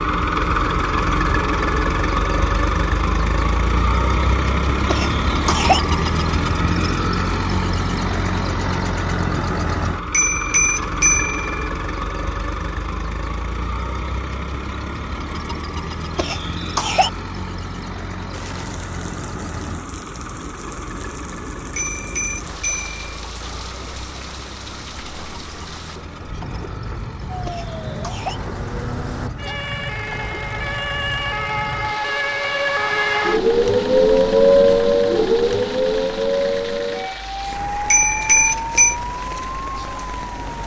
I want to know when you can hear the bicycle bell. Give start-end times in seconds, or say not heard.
10.1-11.7, 21.8-23.0, 37.9-39.0.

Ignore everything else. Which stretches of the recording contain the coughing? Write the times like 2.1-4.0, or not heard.
4.8-5.8, 16.1-17.1, 27.4-28.4.